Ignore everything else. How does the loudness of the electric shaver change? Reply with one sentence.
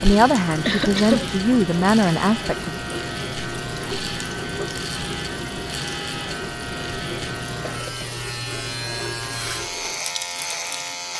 The loudness of the electric shaver stays about the same.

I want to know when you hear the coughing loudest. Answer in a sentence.
The volume of the coughing peaks at 1 second.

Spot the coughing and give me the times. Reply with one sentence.
You can hear the coughing from 0.3 to 1.2 s and from 7.6 to 8.2 s.